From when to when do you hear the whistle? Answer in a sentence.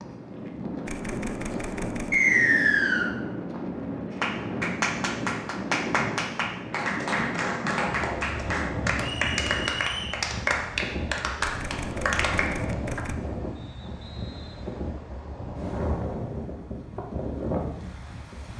You can hear the whistle from 2.1 to 3.1 s, from 9.0 to 10.2 s and from 13.6 to 14.8 s.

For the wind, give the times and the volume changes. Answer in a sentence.
The wind can be heard from 0.0 to 18.5 s, at a steady volume.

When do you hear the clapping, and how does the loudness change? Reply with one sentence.
You can hear the clapping from 4.1 to 13.0 s, at a steady volume.